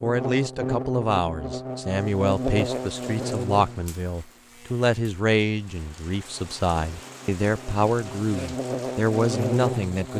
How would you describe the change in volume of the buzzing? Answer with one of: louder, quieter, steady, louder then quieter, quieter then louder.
quieter then louder.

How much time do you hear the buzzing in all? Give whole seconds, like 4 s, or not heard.
10 s.